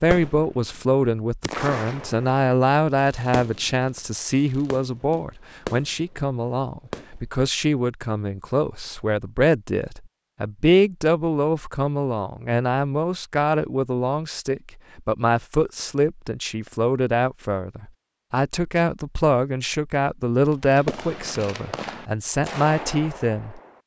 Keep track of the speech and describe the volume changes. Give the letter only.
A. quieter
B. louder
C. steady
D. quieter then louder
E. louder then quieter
C.